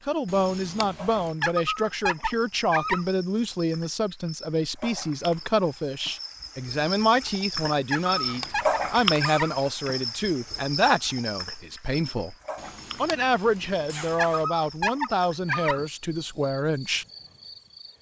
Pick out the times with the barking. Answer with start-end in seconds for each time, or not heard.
1.4-3.0, 7.9-9.5, 14.2-15.8.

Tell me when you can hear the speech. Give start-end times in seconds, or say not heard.
0.1-12.3, 13.0-17.1.